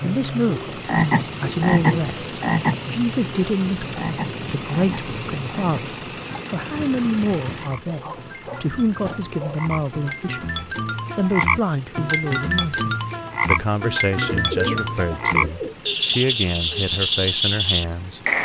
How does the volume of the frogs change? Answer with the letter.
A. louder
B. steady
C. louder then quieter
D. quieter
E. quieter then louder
E.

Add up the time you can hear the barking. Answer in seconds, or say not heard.
2 s.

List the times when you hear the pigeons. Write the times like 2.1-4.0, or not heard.
14.2-15.8.